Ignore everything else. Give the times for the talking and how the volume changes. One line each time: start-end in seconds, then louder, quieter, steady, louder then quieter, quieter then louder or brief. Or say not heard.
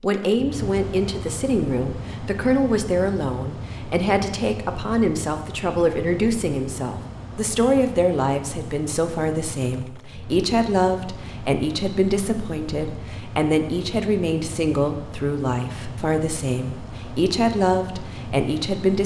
0.0-19.0 steady.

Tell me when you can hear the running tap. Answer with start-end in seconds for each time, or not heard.
not heard.